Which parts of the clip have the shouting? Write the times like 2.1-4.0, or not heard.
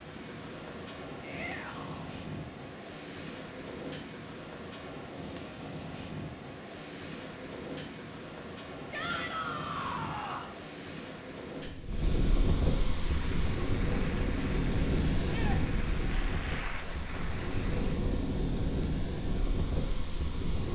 1.2-2.0, 8.9-10.6, 15.2-15.6.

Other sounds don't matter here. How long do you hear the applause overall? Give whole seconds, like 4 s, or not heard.
5 s.